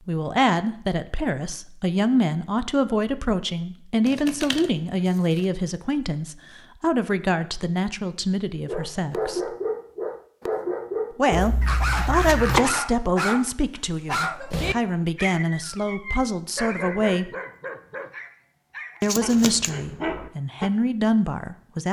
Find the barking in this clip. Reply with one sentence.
You can hear the barking from 8.7 to 20.7 s.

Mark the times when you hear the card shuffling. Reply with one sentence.
The card shuffling can be heard from 4.0 to 5.5 s, from 11.3 to 12.7 s and from 19.0 to 19.7 s.